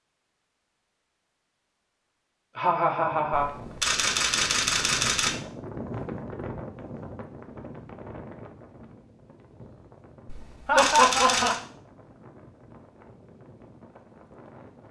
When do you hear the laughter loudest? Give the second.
11 s.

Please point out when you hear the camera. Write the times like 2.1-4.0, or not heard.
3.3-5.3, 10.2-11.6.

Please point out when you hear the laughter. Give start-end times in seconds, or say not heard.
2.5-3.5, 10.7-11.6.